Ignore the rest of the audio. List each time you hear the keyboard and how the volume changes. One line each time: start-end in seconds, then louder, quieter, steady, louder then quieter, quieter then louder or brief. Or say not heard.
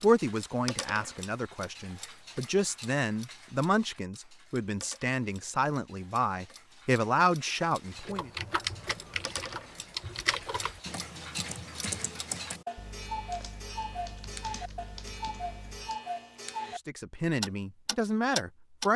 8.0-16.0 quieter.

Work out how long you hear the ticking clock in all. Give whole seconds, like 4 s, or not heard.
18 s.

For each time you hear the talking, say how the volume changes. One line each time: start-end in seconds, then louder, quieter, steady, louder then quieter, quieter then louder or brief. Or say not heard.
0.0-8.3 louder
16.8-18.9 brief.